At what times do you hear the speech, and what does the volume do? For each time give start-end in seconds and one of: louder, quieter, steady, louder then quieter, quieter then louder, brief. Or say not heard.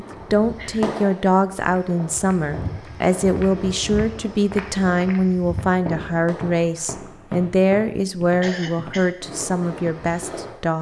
0.0-10.7 steady.